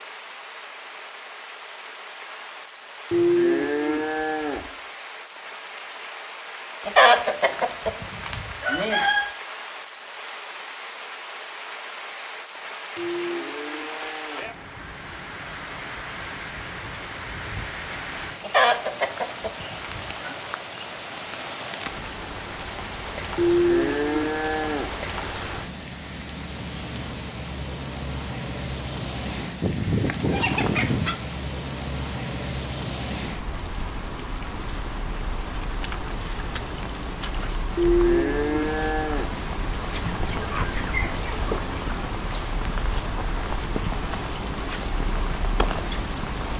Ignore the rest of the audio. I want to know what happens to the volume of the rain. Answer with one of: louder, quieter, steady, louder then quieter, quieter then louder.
louder.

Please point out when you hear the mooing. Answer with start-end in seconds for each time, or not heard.
3.1-4.7, 12.9-14.6, 23.4-24.9, 37.8-39.4.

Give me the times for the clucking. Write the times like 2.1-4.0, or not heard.
6.8-9.3, 18.4-20.4, 29.6-31.2, 40.0-42.0.